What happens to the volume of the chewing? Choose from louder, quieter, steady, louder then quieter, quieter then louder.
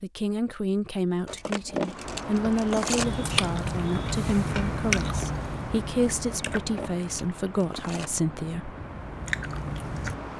quieter then louder.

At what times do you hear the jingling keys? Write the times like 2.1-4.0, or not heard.
1.2-3.0, 6.2-8.1.